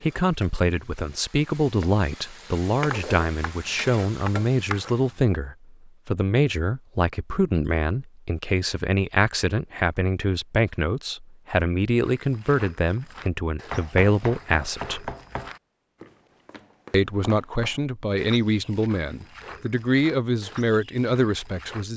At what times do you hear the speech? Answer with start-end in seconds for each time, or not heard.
0.0-15.1, 16.9-21.9.